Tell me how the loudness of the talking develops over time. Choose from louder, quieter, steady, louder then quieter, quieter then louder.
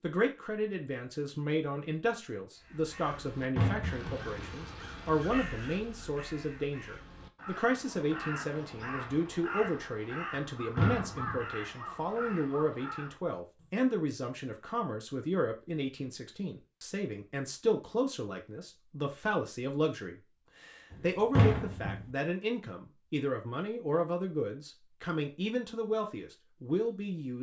steady.